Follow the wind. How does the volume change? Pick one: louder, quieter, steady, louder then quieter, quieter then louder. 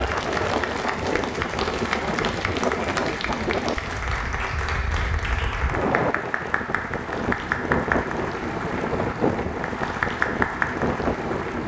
steady.